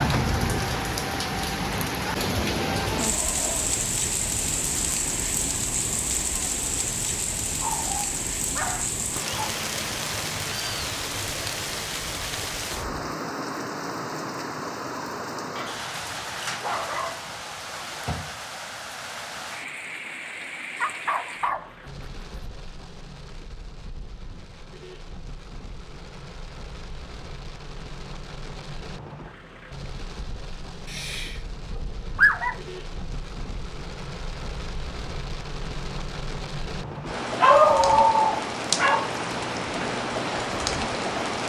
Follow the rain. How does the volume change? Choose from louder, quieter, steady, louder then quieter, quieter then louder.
quieter then louder.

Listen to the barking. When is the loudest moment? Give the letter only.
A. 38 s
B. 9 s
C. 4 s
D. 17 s
A.